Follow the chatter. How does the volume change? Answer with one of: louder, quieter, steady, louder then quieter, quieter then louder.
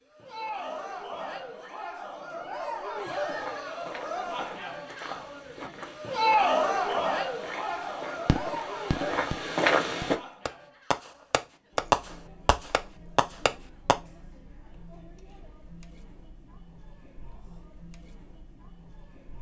louder then quieter.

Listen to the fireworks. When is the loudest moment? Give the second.
12 s.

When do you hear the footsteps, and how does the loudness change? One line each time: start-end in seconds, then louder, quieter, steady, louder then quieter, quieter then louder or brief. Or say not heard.
3.0-10.2 louder.